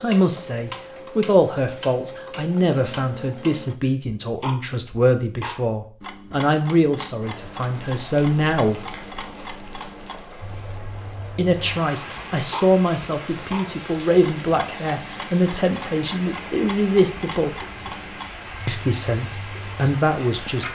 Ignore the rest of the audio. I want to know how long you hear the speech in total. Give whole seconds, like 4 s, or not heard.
17 s.